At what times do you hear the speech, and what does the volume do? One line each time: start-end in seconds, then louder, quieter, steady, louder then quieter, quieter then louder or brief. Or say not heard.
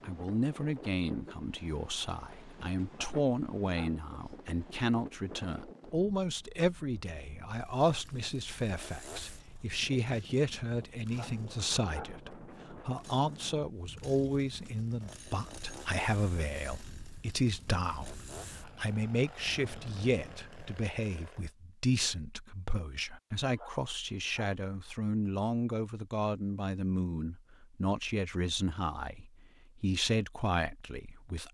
0.0-31.5 steady.